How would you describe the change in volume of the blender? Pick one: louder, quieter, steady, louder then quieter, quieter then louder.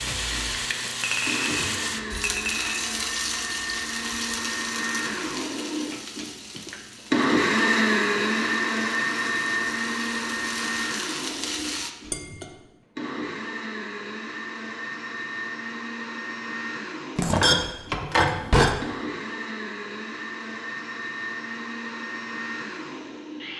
louder then quieter.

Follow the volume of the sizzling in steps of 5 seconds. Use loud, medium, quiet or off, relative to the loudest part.
loud, medium, loud, off, off.